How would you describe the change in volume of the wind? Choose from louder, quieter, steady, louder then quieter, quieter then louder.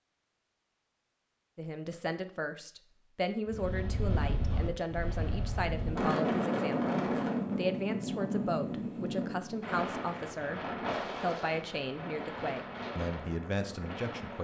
louder then quieter.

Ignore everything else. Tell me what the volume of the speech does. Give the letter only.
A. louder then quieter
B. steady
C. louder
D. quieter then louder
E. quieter
B.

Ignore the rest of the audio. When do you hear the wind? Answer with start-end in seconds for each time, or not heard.
3.5-14.3.